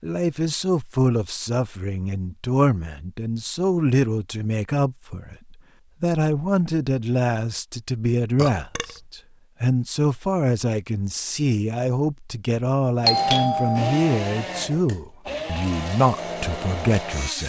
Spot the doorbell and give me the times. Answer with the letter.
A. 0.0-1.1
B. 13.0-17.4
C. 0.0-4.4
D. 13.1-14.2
D.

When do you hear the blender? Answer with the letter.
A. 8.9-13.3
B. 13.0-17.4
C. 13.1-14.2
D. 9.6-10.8
B.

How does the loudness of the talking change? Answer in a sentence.
The volume of the talking stays about the same.